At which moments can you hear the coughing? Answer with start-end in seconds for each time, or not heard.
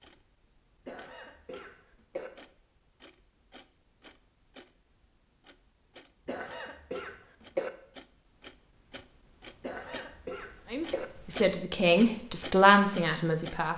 0.8-2.3, 6.2-7.7, 9.6-11.1.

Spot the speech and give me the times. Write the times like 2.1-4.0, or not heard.
10.7-13.7.